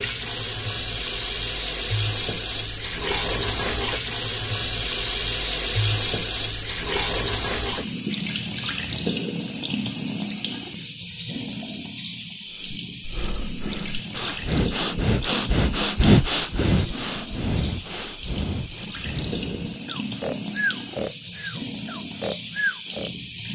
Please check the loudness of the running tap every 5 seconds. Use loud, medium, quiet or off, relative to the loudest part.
loud, loud, medium, medium, medium.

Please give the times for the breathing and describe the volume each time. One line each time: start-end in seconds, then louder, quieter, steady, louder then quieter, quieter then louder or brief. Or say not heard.
12.6-23.1 louder then quieter.